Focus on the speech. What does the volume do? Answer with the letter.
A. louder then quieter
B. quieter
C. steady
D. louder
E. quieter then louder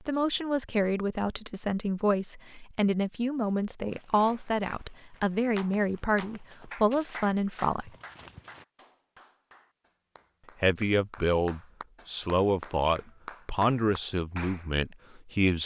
C.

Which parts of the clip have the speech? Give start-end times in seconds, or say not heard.
0.1-7.9, 10.6-15.6.